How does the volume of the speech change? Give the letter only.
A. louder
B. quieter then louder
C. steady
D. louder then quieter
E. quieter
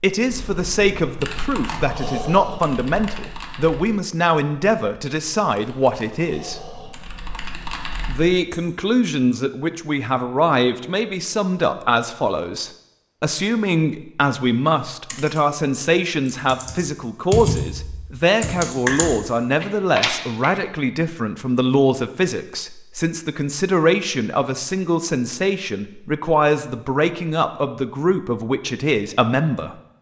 C.